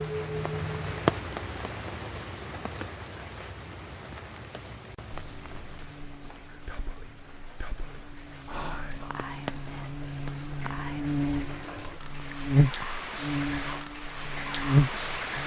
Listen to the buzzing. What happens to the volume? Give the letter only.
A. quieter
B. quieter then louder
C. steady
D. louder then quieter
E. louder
E.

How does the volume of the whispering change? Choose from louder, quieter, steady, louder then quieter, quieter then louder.
louder.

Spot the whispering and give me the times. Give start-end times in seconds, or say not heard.
6.7-12.9.